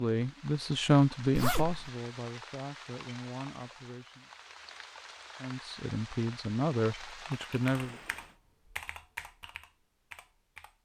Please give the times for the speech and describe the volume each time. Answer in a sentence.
The speech can be heard from 0.0 to 4.2 s, getting quieter; and briefly from 5.4 to 8.0 s.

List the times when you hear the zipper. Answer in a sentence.
You can hear the zipper from 1.4 to 1.9 s.